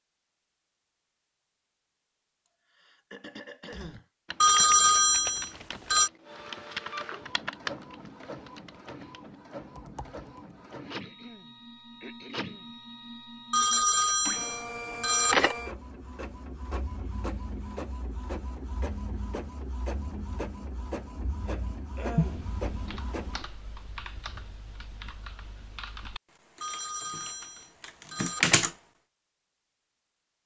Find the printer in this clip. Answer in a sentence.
You can hear the printer from 6.2 to 23.4 s.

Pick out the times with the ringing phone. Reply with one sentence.
The ringing phone can be heard from 4.4 to 6.1 s, from 13.5 to 15.6 s and from 26.6 to 28.6 s.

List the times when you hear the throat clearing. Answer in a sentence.
You can hear the throat clearing from 2.5 to 4.0 s, from 11.0 to 12.7 s and from 21.4 to 22.6 s.